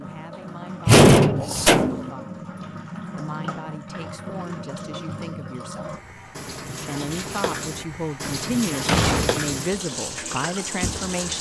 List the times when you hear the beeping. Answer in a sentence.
The beeping can't be heard in this clip.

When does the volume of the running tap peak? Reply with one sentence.
The loudest moment of the running tap is at 9 seconds.